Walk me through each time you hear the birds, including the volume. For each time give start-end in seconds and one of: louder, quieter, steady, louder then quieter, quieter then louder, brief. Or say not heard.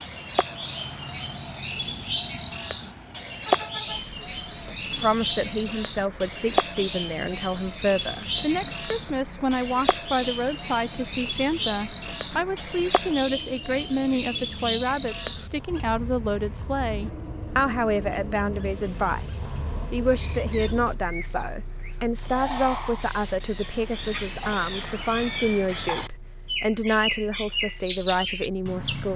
0.0-29.1 quieter then louder.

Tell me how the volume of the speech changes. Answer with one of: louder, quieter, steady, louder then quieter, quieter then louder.
steady.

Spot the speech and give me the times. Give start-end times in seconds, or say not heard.
5.0-29.1.